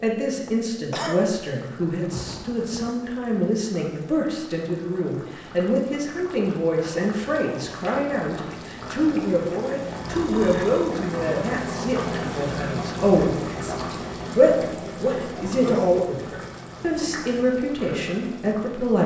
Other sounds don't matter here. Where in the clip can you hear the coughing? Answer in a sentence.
You can hear the coughing from 0.5 to 1.3 s.